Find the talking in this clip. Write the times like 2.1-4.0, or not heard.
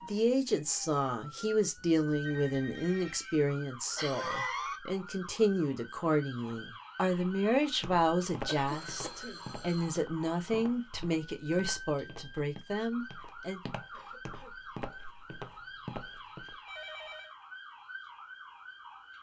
0.0-13.6.